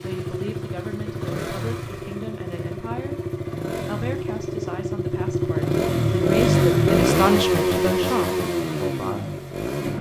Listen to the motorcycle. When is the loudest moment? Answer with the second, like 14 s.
7 s.